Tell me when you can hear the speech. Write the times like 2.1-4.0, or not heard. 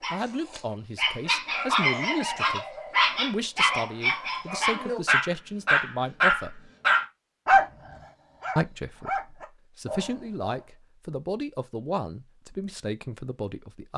0.1-6.7, 8.6-13.9.